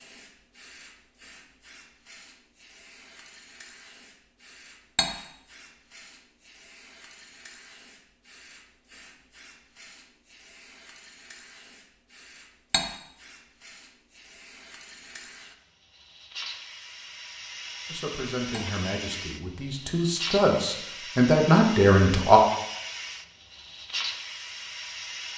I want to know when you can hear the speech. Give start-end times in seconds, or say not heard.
17.9-22.4.